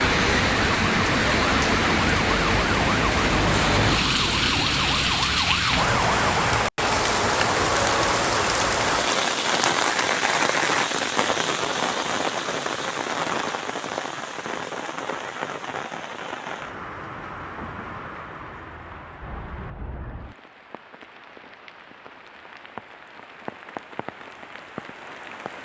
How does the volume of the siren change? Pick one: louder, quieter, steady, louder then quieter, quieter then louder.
steady.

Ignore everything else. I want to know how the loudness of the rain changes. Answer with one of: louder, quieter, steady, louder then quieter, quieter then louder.
quieter.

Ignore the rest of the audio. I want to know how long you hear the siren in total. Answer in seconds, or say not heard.
7 s.